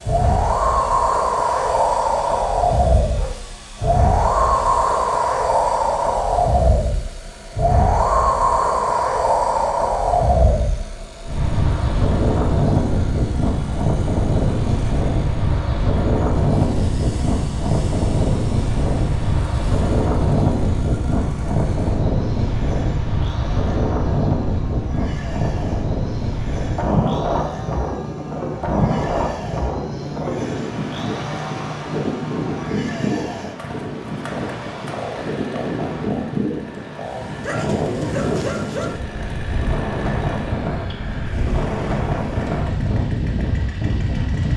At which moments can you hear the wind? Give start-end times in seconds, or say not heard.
0.0-44.5.